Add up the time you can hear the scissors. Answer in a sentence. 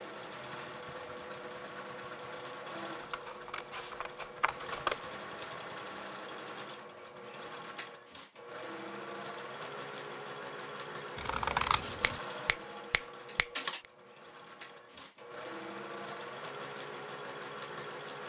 The scissors can be heard for 3 seconds in total.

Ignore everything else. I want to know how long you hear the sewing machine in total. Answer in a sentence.
The sewing machine can be heard for 18 seconds in total.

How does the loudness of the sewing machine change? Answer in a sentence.
The volume of the sewing machine stays about the same.